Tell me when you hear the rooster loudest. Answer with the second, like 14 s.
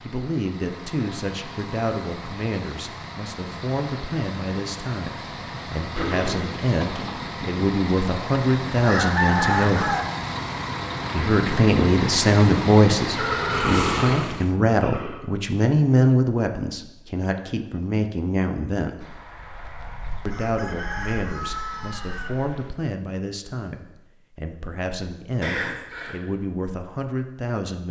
9 s.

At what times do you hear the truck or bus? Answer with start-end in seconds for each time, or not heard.
0.0-14.6.